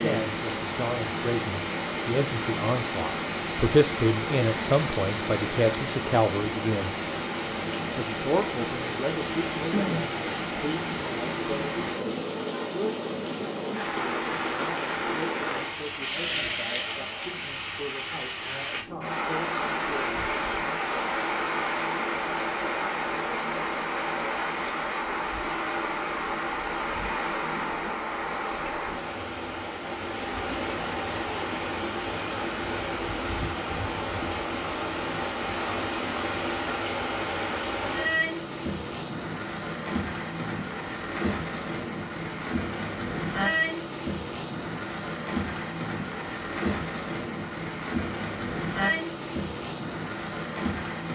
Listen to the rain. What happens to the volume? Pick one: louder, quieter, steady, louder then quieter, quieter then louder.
steady.